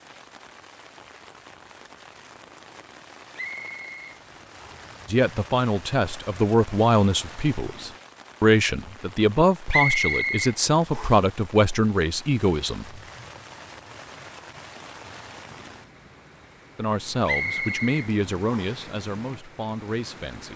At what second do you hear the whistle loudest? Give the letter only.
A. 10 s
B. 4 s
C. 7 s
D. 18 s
A.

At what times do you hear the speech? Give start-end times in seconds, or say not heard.
5.0-12.9, 16.8-20.5.